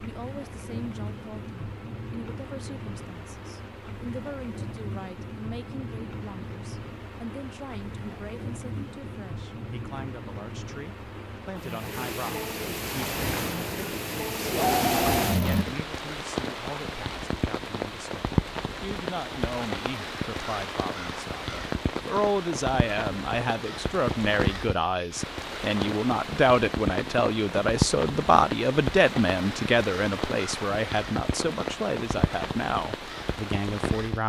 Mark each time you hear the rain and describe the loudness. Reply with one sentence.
You can hear the rain from 0.0 to 34.2 s, getting louder.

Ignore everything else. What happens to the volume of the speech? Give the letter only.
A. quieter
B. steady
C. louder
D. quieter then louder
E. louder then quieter
C.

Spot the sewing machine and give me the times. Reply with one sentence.
You can hear the sewing machine from 12.8 to 15.8 s.